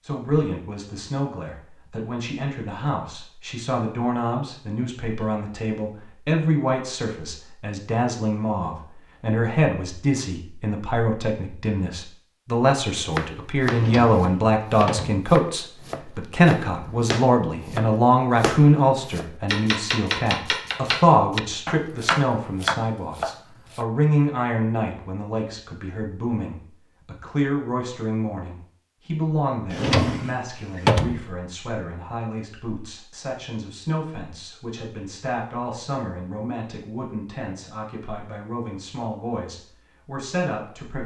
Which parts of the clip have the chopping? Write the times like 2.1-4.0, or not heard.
13.1-23.9.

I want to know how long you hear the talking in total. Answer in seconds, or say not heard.
41 s.